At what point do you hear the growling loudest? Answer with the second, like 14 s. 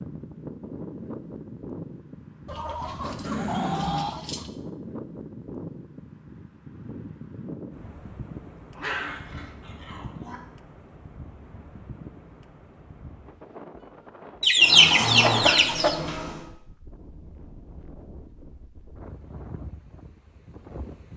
15 s.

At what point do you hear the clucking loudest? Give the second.
15 s.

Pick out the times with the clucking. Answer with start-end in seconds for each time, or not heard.
2.5-4.5, 14.4-15.9.